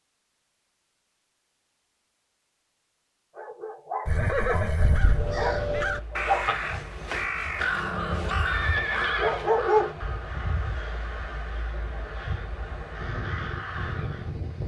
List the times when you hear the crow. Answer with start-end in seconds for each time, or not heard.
4.8-14.3.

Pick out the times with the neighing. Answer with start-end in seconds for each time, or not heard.
4.0-5.4, 8.4-9.5.